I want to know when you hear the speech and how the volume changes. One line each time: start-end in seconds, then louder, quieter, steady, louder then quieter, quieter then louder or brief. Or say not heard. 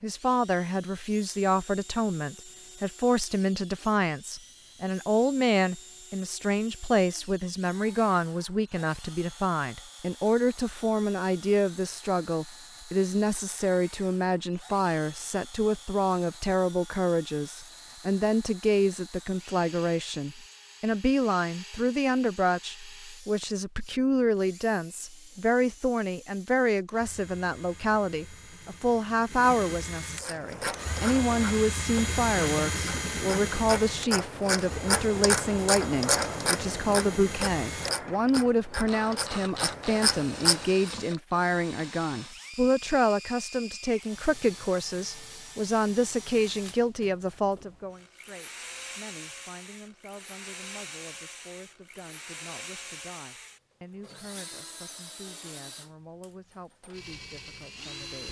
0.0-58.2 quieter.